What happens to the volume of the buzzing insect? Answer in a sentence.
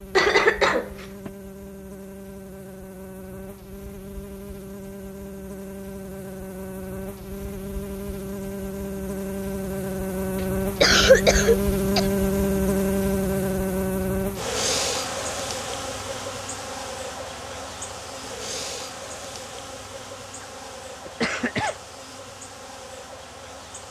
The loudness of the buzzing insect goes up, then down.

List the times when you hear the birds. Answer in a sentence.
You can't hear the birds here.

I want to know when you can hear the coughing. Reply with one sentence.
The coughing can be heard from 0.1 to 1.3 s, from 10.3 to 12.1 s and from 21.1 to 21.8 s.